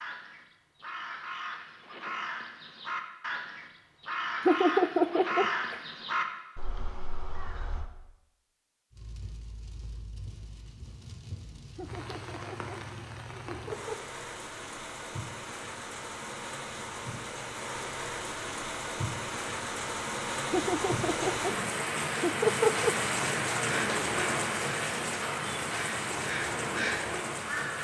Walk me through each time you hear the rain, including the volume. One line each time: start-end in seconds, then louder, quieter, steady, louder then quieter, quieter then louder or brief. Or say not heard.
8.9-27.7 louder.